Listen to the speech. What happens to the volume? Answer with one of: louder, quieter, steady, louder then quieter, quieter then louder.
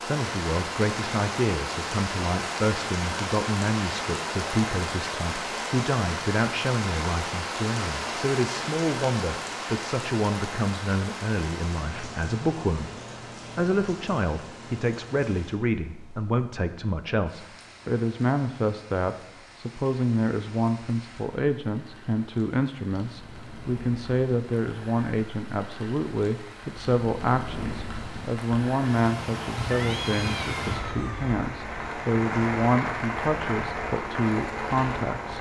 steady.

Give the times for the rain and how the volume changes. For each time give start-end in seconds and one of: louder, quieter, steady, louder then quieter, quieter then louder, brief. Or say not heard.
0.0-35.3 quieter then louder.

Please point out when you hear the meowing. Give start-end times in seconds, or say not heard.
29.7-31.4.